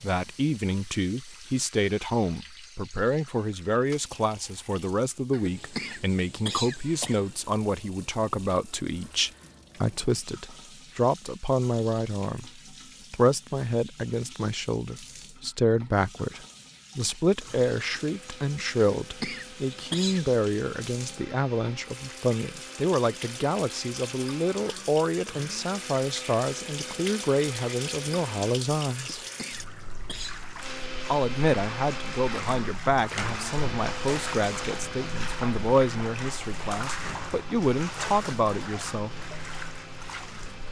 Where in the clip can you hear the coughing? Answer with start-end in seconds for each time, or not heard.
5.3-7.2, 18.8-20.2, 28.9-30.4.